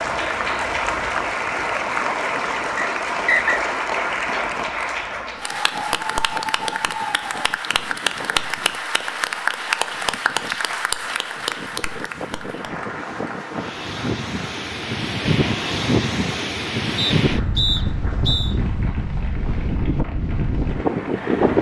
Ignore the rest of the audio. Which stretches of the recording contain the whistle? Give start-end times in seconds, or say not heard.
2.8-3.6, 16.9-18.6.